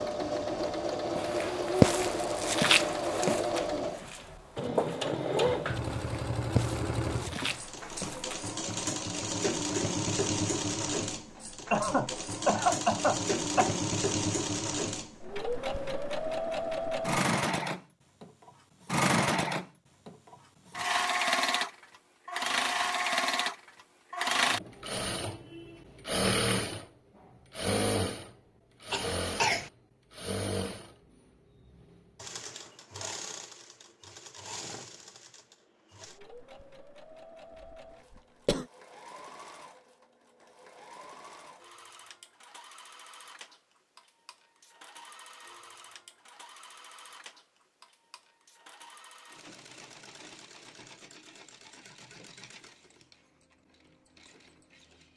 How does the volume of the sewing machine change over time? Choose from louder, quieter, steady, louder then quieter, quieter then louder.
quieter.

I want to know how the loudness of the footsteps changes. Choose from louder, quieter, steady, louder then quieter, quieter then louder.
quieter.